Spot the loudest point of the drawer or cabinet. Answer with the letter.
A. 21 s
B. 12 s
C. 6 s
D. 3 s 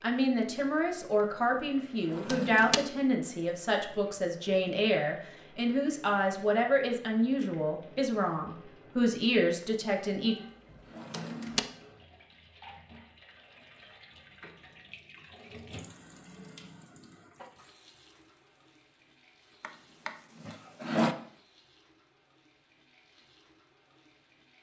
A.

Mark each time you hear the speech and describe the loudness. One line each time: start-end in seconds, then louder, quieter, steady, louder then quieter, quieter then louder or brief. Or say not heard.
0.0-10.3 steady.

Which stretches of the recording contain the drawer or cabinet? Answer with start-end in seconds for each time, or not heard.
2.1-2.8, 10.9-11.6, 19.6-21.1.